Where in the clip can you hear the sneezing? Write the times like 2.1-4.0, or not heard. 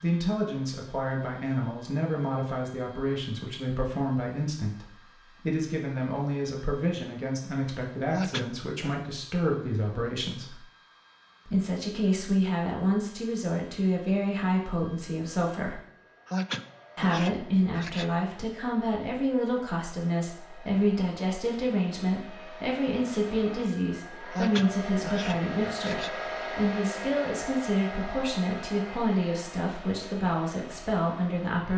8.1-8.9, 16.2-18.1, 24.3-26.1.